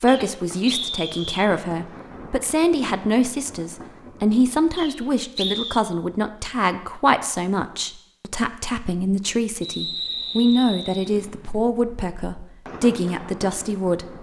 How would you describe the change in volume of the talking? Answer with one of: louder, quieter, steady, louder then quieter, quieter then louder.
steady.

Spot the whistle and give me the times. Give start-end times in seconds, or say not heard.
0.1-1.5, 4.8-5.8, 9.6-11.1.